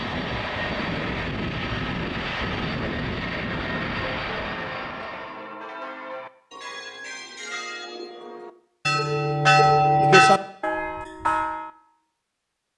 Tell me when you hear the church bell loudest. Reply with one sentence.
The volume of the church bell peaks at 10 seconds.